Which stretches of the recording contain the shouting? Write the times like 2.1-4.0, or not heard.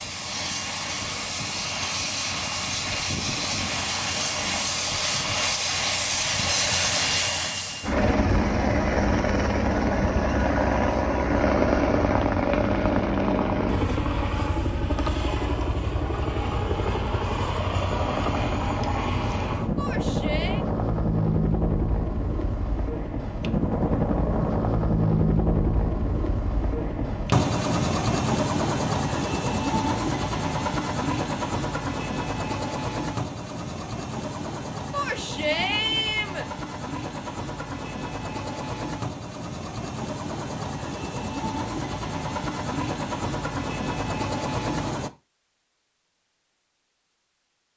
19.8-20.6, 34.9-36.5.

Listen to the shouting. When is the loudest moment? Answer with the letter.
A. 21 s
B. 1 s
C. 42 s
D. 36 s
D.